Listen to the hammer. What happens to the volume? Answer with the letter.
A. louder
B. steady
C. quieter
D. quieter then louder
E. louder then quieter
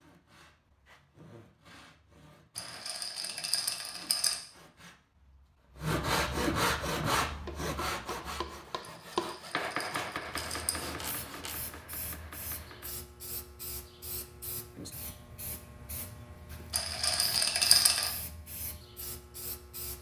E.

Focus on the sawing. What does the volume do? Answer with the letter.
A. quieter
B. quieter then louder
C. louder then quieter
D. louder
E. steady
C.